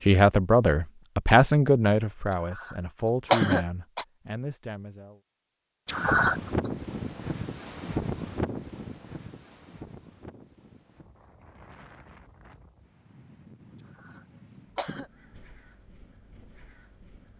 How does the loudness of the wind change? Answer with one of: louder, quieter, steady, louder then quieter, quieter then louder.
quieter.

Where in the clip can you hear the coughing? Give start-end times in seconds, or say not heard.
2.3-4.0, 5.8-6.7, 13.8-15.1.